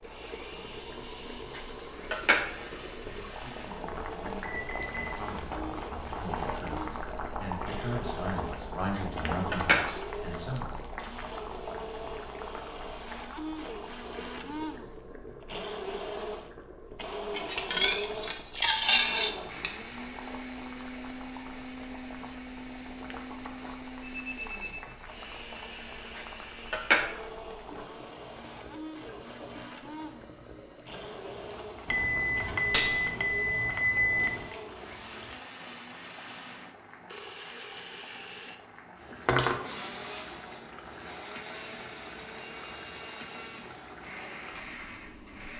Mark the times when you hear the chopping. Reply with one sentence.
The chopping can't be heard in this clip.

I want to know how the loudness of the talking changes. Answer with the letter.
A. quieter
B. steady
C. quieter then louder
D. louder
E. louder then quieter
D.